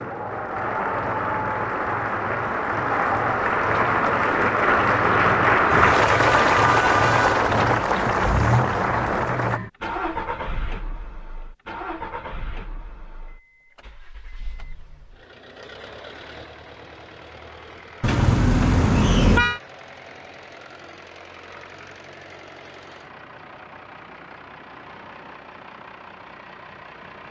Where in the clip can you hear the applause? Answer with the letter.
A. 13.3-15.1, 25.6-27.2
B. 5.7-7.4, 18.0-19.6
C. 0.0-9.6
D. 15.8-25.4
C.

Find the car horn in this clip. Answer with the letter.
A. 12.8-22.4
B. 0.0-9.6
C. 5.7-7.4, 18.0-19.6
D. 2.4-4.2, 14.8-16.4
C.